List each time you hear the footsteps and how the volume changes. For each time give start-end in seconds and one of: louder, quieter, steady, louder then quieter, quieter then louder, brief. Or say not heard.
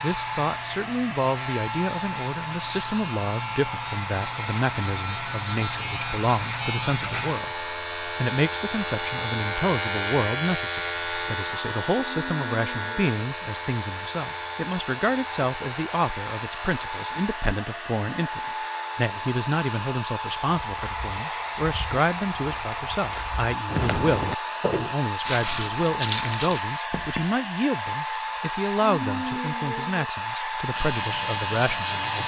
20.6-27.2 louder.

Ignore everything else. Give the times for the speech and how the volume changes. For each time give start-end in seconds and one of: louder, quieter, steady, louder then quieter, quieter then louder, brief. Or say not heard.
0.0-32.2 steady.